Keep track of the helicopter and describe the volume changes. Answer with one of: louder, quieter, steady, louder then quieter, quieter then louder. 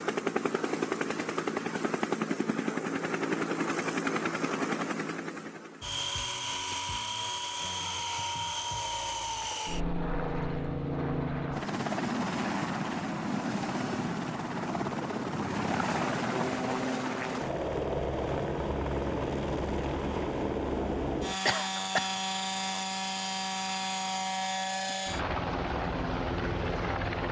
steady.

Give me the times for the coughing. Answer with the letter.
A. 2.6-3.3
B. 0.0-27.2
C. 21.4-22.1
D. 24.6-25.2
C.